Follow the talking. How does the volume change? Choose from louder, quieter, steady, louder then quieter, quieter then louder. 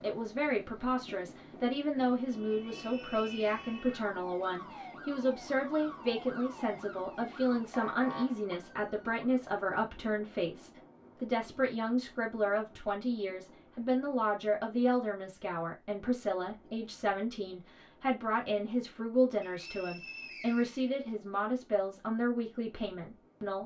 steady.